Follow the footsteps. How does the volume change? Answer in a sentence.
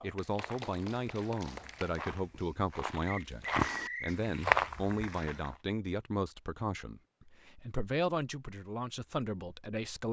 The volume of the footsteps goes up.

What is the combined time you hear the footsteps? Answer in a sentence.
You can hear the footsteps for 5 seconds altogether.